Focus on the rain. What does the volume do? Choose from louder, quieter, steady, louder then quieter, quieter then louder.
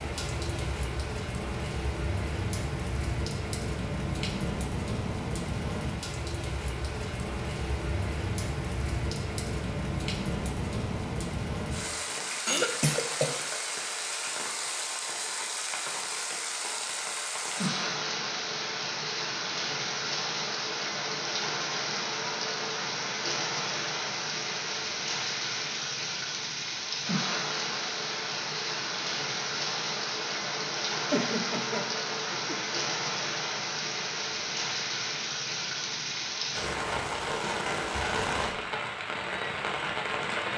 steady.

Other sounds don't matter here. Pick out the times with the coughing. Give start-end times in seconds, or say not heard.
12.4-13.7, 31.1-32.5.